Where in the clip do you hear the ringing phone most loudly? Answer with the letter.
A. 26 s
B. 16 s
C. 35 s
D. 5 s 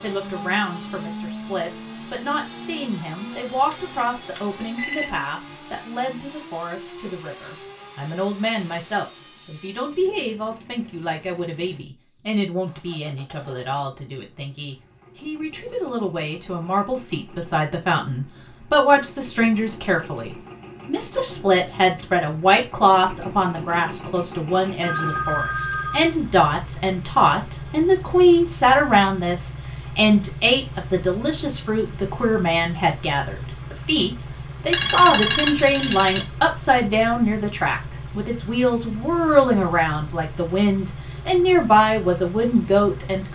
C.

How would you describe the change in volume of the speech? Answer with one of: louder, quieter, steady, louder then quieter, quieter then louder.
louder.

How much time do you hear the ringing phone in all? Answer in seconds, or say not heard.
4 s.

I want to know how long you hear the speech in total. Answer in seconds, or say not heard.
43 s.